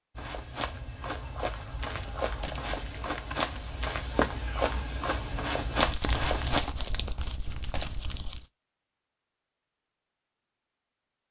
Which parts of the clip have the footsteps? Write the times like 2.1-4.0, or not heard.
0.1-6.6.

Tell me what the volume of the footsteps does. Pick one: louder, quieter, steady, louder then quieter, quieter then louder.
louder.